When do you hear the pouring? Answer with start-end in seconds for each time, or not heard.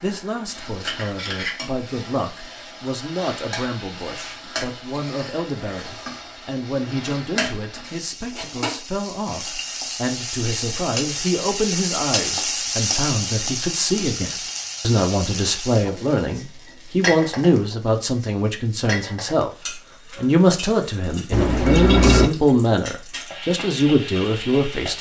21.3-22.3.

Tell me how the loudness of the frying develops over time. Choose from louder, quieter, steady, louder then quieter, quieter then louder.
louder then quieter.